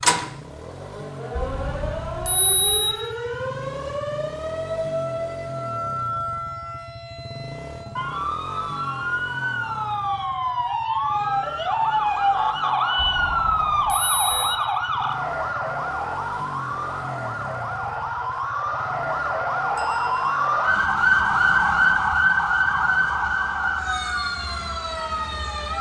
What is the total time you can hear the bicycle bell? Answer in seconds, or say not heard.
4 s.